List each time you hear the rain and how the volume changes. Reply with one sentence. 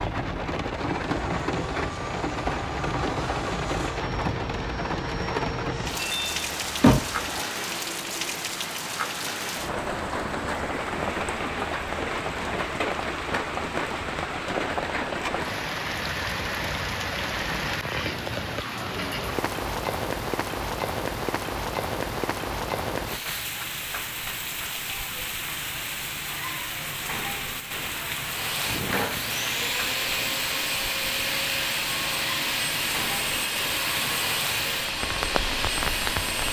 The rain can be heard from 0.0 to 36.4 s, at a steady volume.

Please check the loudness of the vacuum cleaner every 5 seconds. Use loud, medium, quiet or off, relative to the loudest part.
medium, medium, off, off, off, loud, loud, loud.